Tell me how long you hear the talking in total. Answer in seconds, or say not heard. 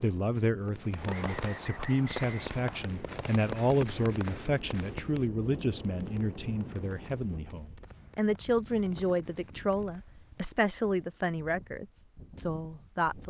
13 s.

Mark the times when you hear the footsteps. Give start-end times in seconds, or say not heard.
not heard.